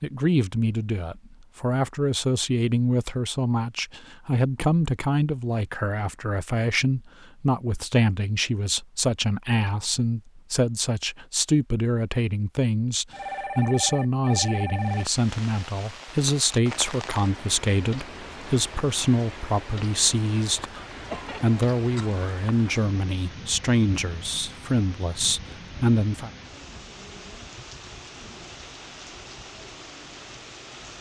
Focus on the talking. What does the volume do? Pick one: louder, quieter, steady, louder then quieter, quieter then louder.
steady.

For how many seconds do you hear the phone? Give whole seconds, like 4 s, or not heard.
2 s.